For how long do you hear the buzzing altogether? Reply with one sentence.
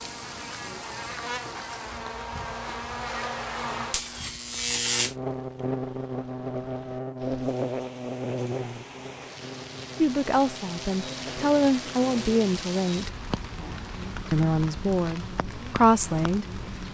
You can hear the buzzing for 17 seconds altogether.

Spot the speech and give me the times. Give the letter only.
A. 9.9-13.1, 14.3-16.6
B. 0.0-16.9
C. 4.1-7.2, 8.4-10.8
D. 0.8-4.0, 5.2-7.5
A.